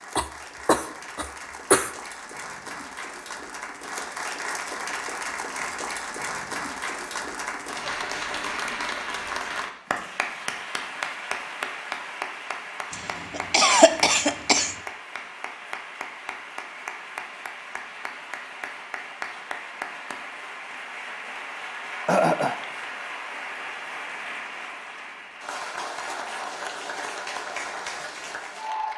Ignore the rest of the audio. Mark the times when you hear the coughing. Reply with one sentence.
The coughing can be heard from 0.1 to 1.9 s, from 12.9 to 14.8 s and from 22.1 to 22.6 s.